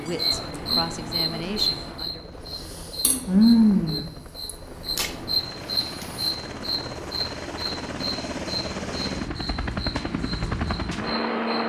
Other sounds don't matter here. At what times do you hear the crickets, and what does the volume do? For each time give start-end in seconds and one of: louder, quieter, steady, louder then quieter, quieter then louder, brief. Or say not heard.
0.0-11.6 louder then quieter.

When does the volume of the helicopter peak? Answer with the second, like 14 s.
11 s.